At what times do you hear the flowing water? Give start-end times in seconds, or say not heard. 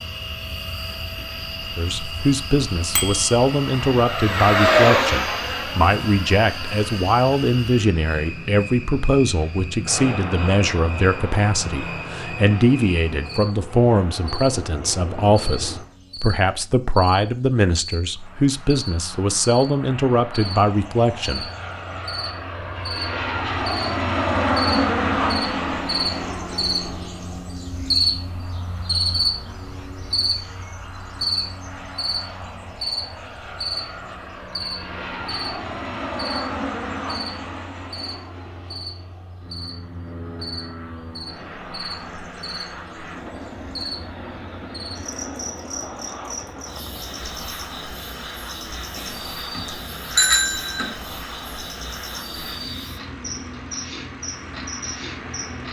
not heard.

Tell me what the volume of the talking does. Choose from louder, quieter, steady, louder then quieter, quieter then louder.
steady.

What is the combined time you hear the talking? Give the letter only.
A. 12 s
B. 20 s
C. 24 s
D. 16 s
B.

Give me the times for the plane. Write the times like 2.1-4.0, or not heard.
0.0-15.8, 18.2-55.6.